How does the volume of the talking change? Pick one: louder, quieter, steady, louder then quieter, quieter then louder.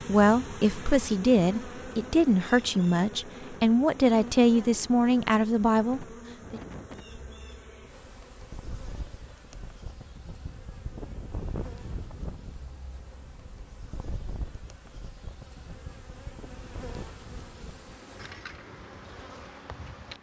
steady.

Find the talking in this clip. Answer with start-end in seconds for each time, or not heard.
0.1-6.6.